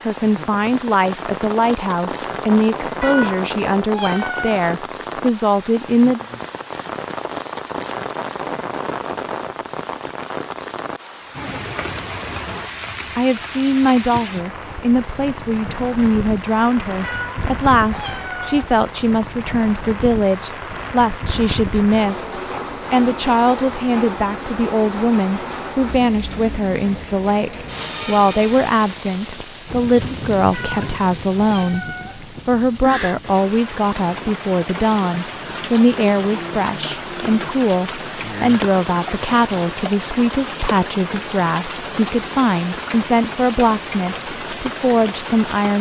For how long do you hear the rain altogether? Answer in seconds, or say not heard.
46 s.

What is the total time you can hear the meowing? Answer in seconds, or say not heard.
5 s.